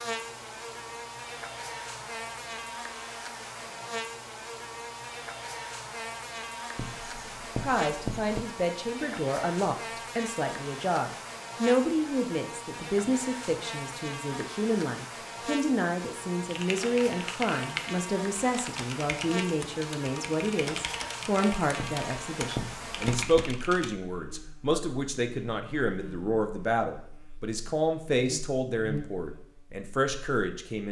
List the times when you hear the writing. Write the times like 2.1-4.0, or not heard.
6.8-8.4, 21.8-23.4.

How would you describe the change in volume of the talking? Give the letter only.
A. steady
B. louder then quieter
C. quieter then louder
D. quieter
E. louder
A.